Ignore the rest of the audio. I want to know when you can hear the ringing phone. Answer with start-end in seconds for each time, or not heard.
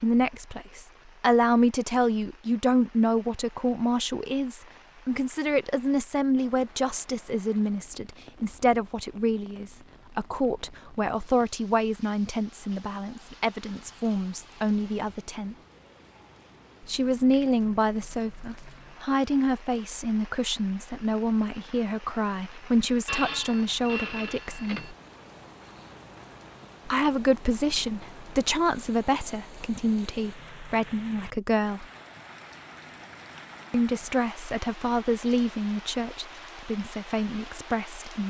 23.1-24.9.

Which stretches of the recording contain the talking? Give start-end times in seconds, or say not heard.
0.0-15.6, 16.9-24.9, 26.9-31.9, 33.7-38.2.